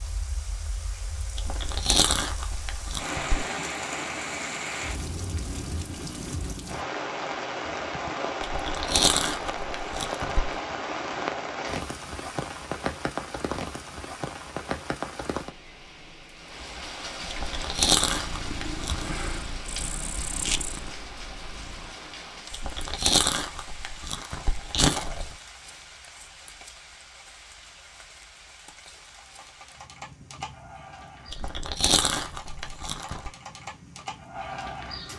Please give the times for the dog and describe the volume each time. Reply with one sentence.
The dog can't be heard in this clip.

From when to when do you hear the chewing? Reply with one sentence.
The chewing can be heard from 1.4 to 3.5 s, from 8.4 to 10.6 s, from 17.2 to 19.1 s, from 22.5 to 25.4 s and from 31.3 to 33.3 s.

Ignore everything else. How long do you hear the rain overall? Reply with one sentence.
The rain can be heard for 35 seconds in total.